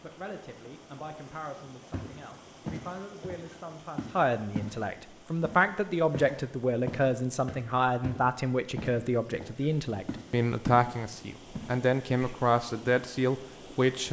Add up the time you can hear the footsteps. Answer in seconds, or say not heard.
9 s.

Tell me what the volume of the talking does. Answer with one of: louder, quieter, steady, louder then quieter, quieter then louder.
louder.